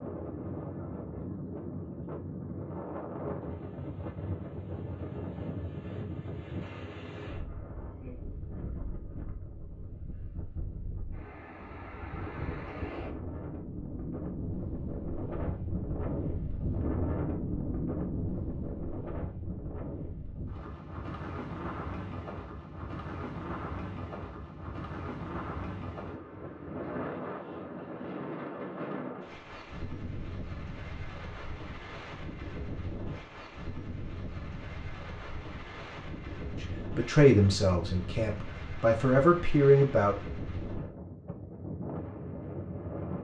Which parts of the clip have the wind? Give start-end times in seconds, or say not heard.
0.0-43.2.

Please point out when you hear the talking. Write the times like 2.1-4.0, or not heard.
36.6-40.1.